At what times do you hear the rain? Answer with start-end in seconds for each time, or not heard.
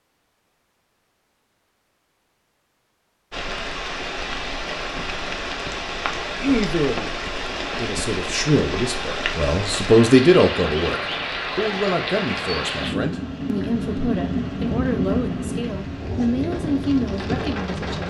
3.3-18.0.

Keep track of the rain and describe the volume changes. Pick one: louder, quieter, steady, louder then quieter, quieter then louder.
steady.